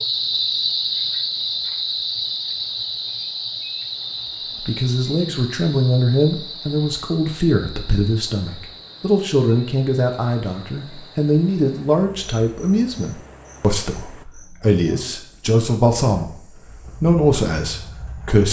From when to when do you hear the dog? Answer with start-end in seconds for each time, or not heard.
not heard.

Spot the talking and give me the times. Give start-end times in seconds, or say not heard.
4.6-16.4, 17.0-18.4.